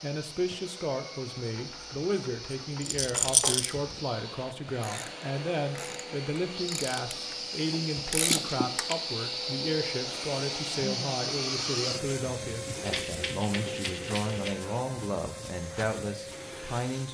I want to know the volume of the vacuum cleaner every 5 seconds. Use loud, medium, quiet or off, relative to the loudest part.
medium, loud, loud, medium.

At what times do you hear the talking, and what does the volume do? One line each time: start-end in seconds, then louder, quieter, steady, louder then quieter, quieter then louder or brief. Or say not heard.
0.0-17.0 steady.